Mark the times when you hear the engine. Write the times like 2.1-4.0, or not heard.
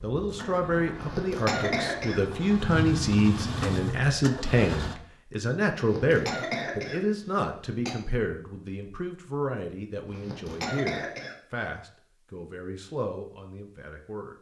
0.1-5.0.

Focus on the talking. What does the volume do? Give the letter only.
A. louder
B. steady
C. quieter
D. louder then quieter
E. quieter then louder
C.